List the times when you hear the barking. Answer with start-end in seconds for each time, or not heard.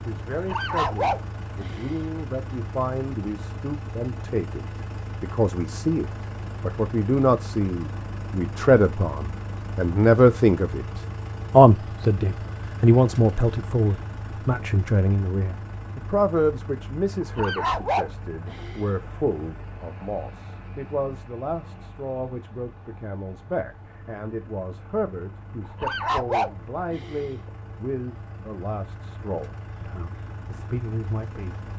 0.3-2.2, 17.2-18.9, 25.6-27.5.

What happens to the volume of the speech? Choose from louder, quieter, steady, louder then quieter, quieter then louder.
louder then quieter.